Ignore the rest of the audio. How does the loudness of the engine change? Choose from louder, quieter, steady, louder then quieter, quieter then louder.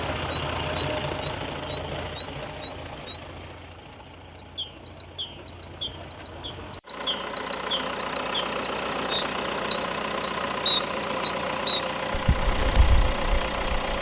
quieter then louder.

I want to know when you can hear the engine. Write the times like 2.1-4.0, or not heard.
0.0-13.9.